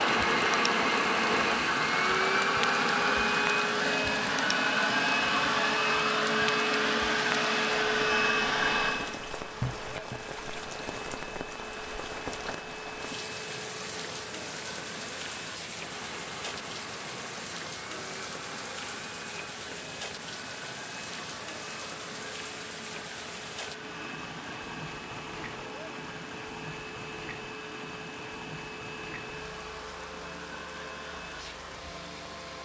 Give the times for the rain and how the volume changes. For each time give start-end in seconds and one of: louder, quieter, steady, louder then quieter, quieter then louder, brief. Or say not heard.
0.0-32.6 quieter.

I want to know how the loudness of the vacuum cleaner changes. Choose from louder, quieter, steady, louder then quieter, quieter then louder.
quieter.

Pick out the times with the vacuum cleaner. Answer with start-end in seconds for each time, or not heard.
0.0-32.6.